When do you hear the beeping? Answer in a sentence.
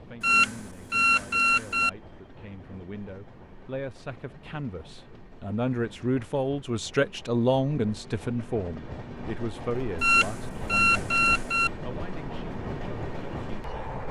You can hear the beeping from 0.2 to 1.9 s and from 10.0 to 11.7 s.